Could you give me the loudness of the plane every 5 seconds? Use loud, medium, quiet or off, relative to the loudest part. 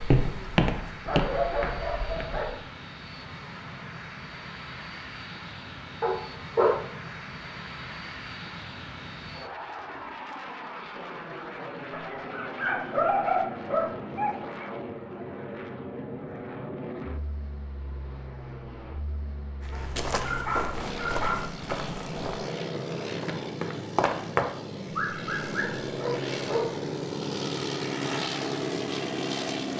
medium, medium, medium, medium, medium, loud.